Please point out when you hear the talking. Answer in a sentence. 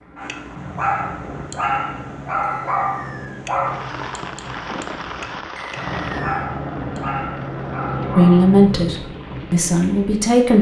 You can hear the talking from 8.2 to 10.5 s.